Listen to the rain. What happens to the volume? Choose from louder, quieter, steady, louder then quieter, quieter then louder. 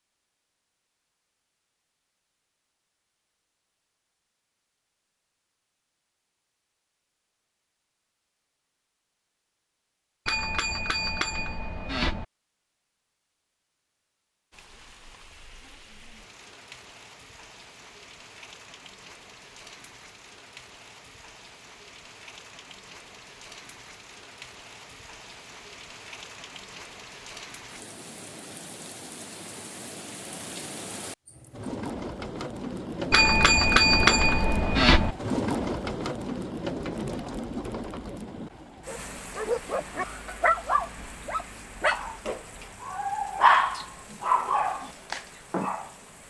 louder then quieter.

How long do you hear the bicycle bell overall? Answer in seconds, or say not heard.
4 s.